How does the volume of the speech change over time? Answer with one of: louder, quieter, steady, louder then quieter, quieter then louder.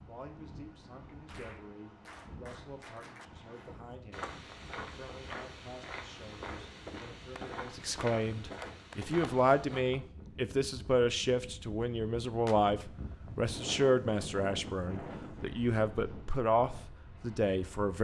louder.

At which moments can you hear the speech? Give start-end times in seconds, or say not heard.
0.1-17.9.